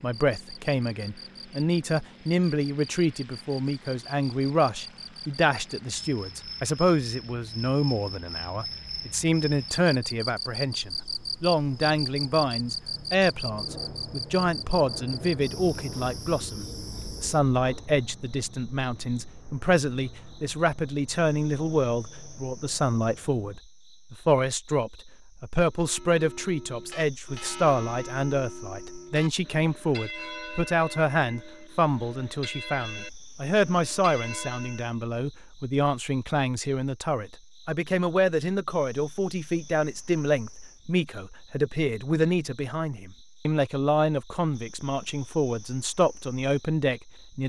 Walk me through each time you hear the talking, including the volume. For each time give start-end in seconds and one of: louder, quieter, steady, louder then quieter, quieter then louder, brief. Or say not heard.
0.0-47.4 steady.